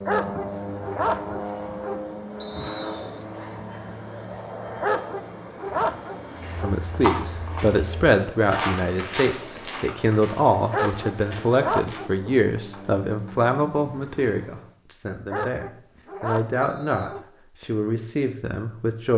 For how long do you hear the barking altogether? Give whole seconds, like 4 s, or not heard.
7 s.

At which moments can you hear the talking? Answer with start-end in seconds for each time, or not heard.
6.6-19.1.